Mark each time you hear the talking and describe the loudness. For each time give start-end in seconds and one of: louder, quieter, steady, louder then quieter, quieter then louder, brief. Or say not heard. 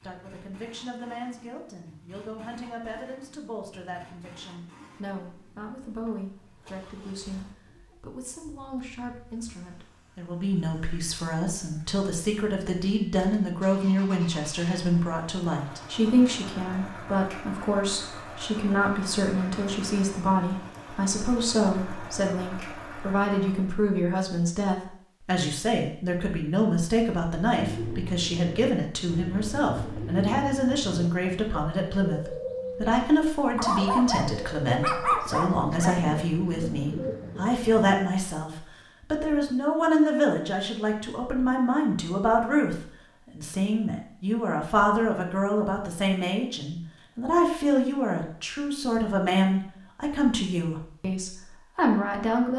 0.0-52.5 louder.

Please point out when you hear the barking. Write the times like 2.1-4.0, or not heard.
33.5-36.1.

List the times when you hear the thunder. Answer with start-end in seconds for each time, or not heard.
not heard.